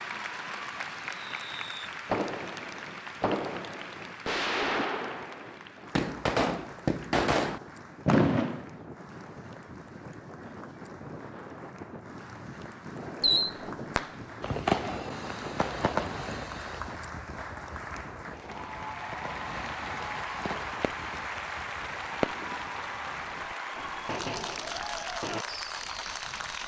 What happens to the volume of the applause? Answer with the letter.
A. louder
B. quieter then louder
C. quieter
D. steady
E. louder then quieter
B.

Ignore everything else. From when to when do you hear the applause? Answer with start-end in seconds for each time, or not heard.
0.0-26.6.